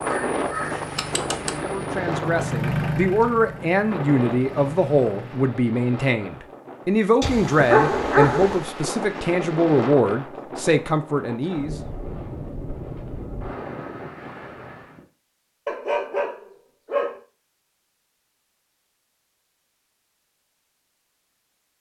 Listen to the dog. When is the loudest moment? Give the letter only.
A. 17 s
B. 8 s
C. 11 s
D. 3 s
B.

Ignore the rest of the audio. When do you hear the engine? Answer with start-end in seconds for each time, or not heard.
0.0-5.3.